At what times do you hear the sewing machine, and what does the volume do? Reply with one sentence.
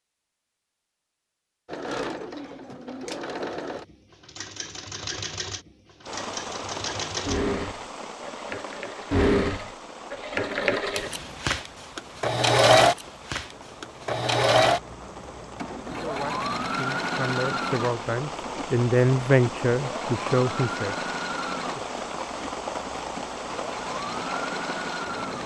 The sewing machine can be heard from 1.6 to 25.4 s, getting louder then quieter.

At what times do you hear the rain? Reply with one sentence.
The rain can be heard from 6.0 to 25.4 s.